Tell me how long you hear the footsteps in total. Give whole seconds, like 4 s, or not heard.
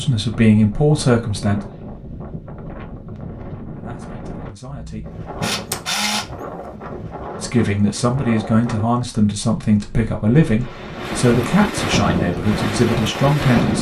not heard.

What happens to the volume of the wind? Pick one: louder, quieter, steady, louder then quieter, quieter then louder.
louder.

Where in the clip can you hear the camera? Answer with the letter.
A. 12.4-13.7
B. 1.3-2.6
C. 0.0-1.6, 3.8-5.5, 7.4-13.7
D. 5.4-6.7
D.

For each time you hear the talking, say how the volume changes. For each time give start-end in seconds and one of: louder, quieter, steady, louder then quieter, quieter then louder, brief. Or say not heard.
0.0-1.6 brief
3.8-5.5 brief
7.4-13.7 steady.